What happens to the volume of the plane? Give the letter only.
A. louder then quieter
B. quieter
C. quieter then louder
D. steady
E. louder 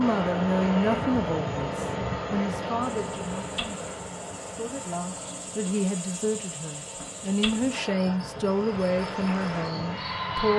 C.